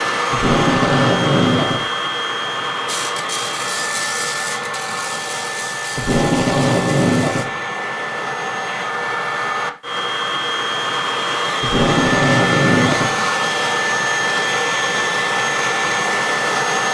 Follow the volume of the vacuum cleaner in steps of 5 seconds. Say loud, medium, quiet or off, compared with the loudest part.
loud, medium, loud, loud.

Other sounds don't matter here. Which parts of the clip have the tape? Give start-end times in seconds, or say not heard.
0.3-1.9, 6.0-7.5, 11.6-13.2.